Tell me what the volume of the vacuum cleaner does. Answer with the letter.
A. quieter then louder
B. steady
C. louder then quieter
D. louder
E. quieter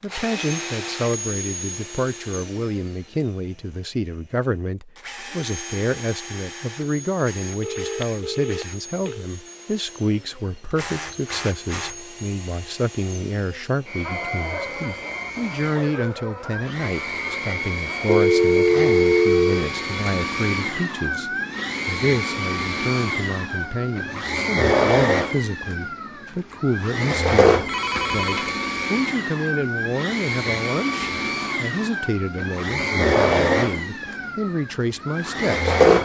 D.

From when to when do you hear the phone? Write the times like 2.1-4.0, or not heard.
7.6-9.2, 18.1-19.7, 27.6-28.5.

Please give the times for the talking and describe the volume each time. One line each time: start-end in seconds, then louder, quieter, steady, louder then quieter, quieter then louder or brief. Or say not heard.
0.0-36.0 steady.